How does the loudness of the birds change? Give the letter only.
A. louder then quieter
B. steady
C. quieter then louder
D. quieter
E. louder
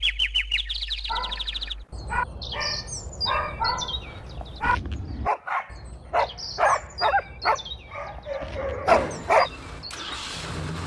D.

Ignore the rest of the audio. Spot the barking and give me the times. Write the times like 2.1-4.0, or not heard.
1.1-9.5.